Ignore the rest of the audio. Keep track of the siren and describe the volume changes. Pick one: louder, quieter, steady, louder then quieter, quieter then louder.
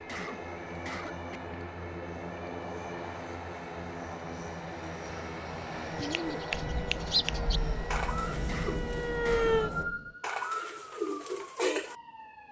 louder then quieter.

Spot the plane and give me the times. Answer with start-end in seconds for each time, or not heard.
0.0-9.9.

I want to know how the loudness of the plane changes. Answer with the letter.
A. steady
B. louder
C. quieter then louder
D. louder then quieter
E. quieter
A.